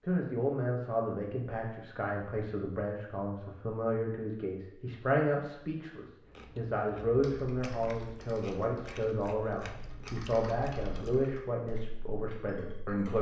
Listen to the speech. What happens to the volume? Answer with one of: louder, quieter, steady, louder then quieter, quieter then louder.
steady.